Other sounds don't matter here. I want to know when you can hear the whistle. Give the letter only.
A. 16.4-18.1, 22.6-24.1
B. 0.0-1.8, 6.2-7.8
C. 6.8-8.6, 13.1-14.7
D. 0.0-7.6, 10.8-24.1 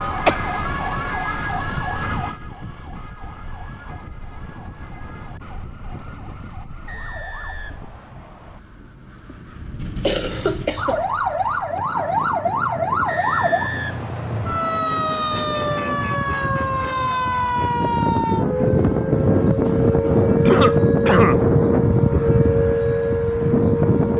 C.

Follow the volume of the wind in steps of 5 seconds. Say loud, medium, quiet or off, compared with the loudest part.
quiet, quiet, quiet, loud, loud.